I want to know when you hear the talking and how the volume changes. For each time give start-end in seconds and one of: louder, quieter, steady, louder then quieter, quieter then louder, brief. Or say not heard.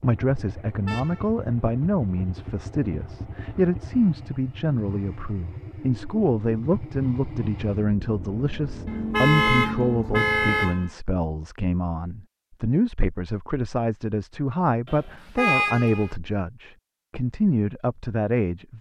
0.0-18.7 steady.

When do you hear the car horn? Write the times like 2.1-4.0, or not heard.
0.8-1.2, 8.8-10.9, 14.8-16.1.